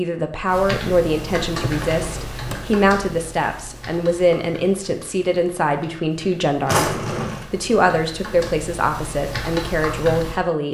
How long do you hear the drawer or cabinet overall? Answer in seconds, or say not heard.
2 s.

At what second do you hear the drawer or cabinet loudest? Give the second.
7 s.